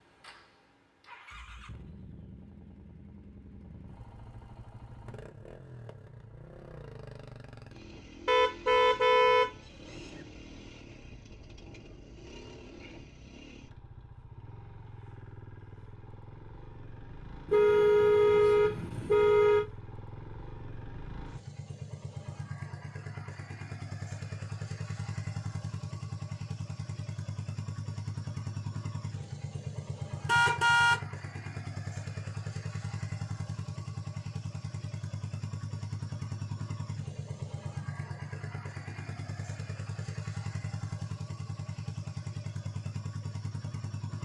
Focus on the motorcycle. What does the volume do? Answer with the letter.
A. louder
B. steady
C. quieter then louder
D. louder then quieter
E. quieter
A.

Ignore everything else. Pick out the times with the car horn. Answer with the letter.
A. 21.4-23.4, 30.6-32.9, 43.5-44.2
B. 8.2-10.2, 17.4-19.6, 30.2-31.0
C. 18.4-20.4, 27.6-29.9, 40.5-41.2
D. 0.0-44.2
B.